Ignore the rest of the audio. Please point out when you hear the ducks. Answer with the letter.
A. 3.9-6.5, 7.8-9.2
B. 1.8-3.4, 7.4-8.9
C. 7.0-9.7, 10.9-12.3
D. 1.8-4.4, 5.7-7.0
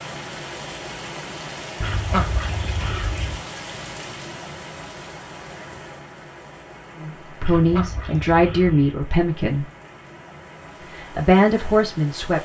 B.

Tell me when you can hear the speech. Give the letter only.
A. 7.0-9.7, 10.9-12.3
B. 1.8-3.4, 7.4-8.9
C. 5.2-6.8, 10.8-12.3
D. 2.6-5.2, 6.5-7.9
A.